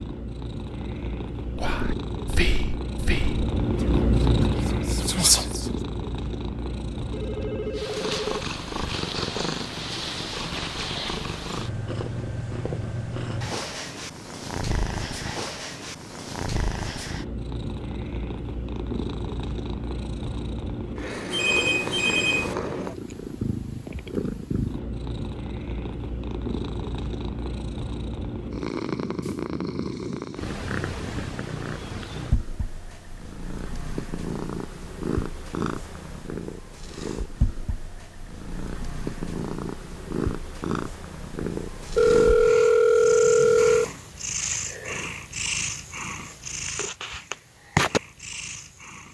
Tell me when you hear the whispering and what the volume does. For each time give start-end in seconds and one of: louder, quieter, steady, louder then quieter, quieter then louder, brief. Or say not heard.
1.6-5.7 quieter then louder.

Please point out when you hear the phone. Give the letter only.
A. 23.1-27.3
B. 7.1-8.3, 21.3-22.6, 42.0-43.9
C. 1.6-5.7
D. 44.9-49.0
B.